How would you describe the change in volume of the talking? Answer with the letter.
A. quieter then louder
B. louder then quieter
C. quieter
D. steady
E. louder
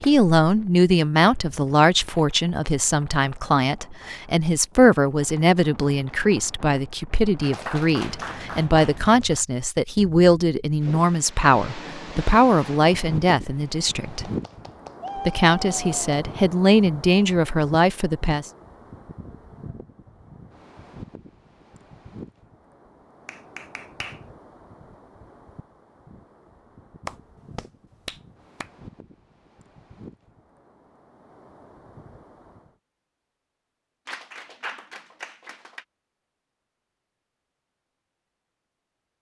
D.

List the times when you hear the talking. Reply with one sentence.
The talking can be heard from 0.0 to 14.2 s and from 15.2 to 18.5 s.